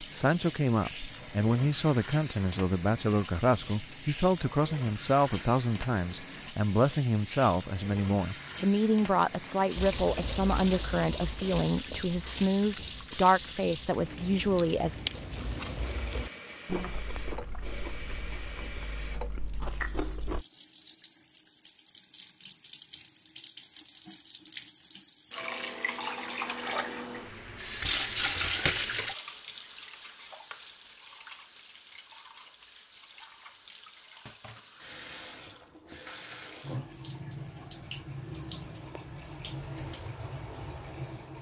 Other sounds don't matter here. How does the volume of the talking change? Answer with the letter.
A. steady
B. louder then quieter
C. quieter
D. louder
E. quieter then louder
A.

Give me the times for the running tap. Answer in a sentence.
The running tap can be heard from 0.0 to 41.3 s.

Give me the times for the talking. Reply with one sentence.
You can hear the talking from 0.0 to 14.9 s.